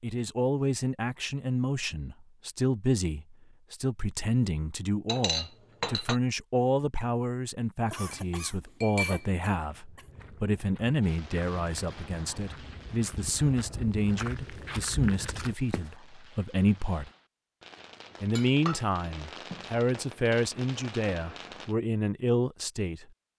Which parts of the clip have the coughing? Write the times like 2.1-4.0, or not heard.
7.9-10.1.